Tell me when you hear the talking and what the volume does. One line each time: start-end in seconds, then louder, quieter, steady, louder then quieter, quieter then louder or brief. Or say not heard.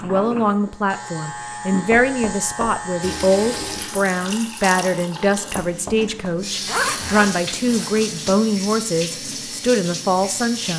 0.0-10.7 steady.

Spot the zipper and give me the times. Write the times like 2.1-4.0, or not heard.
6.7-8.4.